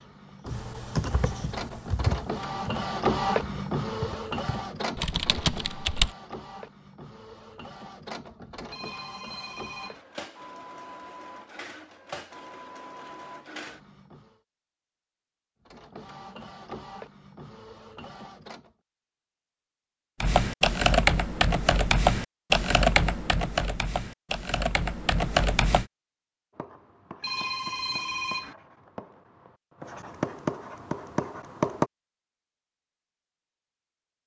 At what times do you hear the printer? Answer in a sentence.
You can hear the printer from 0.0 to 14.3 s and from 15.7 to 18.7 s.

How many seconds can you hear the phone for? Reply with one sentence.
You can hear the phone for 3 seconds altogether.